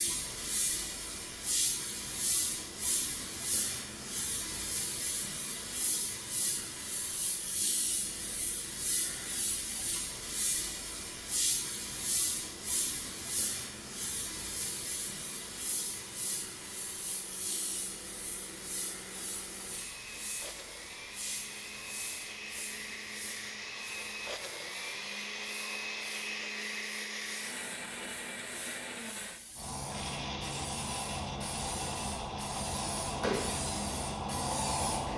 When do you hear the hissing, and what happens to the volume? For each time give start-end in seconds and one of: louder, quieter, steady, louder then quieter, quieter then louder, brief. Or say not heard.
0.0-35.1 quieter then louder.